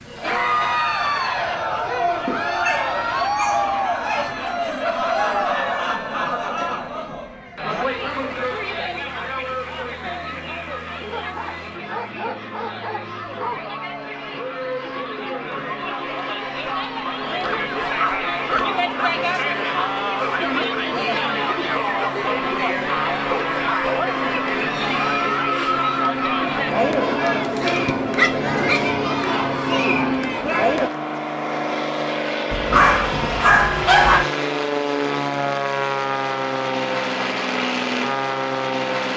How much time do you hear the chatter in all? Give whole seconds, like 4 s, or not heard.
31 s.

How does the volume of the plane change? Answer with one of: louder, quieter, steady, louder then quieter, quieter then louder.
louder.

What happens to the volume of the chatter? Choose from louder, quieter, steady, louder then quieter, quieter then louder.
quieter then louder.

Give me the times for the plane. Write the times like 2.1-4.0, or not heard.
0.0-39.1.